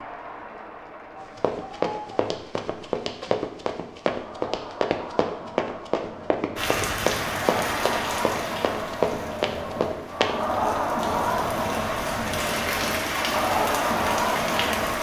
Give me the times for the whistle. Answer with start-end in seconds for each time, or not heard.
not heard.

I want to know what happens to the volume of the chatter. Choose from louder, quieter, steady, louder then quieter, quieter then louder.
louder.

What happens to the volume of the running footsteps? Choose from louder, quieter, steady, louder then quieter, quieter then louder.
steady.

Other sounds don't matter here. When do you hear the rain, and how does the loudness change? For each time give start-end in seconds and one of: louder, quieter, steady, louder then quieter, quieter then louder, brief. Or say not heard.
6.5-14.9 quieter then louder.